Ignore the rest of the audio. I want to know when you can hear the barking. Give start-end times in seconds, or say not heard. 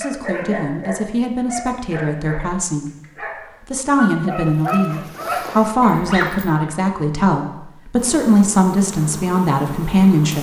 0.0-6.7.